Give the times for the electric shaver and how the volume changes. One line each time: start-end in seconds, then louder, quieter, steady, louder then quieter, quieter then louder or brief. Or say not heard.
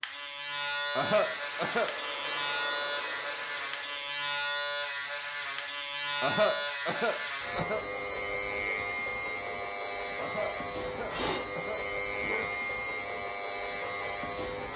0.0-14.7 steady.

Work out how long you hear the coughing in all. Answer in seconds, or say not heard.
5 s.